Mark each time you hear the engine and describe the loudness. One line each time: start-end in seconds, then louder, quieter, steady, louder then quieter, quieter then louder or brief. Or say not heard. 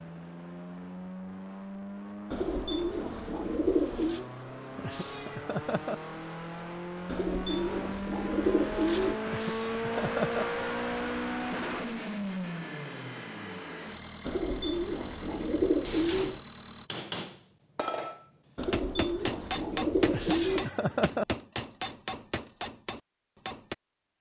0.0-16.9 louder then quieter.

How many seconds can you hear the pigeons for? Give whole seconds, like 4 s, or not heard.
8 s.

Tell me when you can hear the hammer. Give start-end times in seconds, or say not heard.
15.8-23.8.